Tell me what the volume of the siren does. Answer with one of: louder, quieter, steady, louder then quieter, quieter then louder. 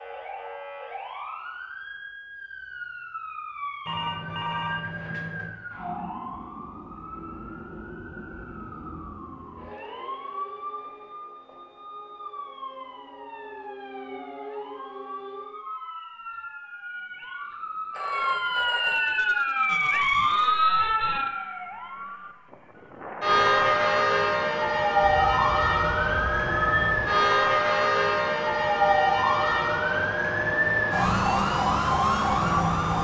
louder.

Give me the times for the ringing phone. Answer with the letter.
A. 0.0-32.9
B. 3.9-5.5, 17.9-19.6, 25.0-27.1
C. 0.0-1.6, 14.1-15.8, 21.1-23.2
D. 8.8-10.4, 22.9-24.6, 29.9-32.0
B.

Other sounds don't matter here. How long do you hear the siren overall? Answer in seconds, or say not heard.
33 s.